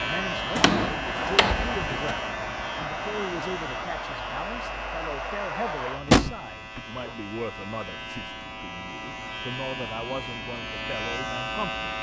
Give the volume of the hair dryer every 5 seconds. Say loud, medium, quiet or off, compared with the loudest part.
loud, loud, off.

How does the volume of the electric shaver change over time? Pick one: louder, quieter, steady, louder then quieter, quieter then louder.
quieter then louder.